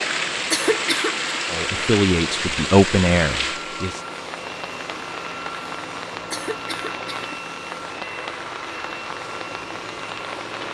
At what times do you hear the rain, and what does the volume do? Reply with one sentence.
The rain can be heard from 0.0 to 10.6 s, getting quieter.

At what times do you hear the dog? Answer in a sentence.
You can't hear the dog here.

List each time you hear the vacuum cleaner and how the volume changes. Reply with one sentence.
The vacuum cleaner can be heard from 0.0 to 10.6 s, at a steady volume.